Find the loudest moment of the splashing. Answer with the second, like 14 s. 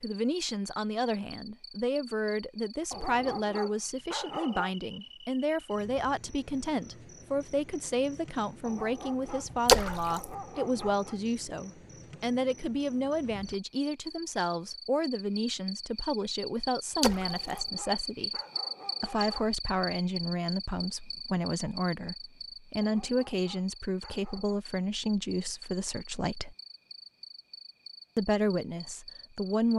10 s.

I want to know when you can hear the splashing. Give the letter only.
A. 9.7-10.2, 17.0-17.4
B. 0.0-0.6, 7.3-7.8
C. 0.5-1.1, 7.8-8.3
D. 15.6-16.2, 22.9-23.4
A.